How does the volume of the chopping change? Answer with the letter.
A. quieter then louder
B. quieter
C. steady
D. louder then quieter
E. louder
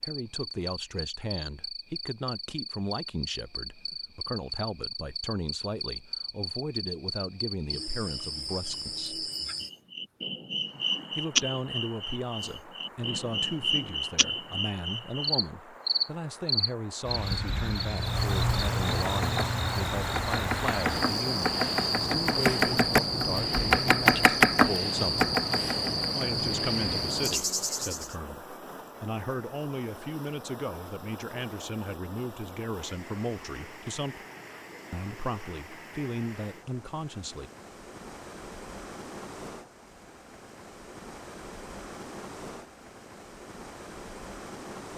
E.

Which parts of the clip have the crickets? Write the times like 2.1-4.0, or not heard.
0.0-28.1.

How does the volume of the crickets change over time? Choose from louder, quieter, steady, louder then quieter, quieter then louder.
louder.